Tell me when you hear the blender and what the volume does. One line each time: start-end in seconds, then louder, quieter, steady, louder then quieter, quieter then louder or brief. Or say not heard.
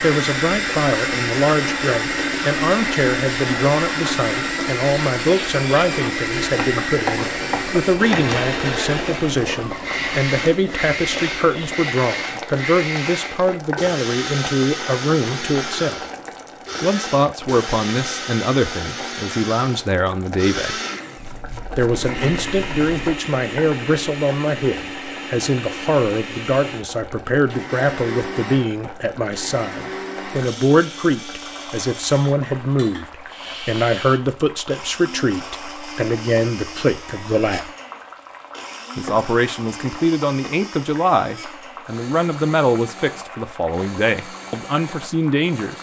0.0-45.7 quieter.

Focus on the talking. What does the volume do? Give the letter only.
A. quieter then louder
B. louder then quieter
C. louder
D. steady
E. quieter
D.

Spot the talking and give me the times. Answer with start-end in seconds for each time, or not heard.
0.0-16.0, 16.8-20.8, 21.8-37.7, 39.0-45.7.